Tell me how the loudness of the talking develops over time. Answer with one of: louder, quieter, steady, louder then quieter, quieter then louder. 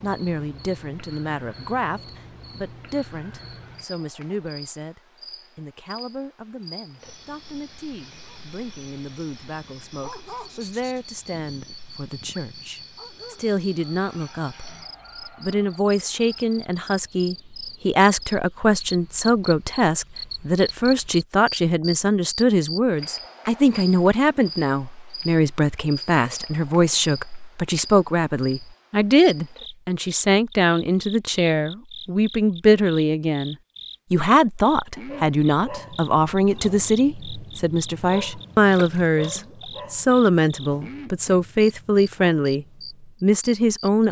louder.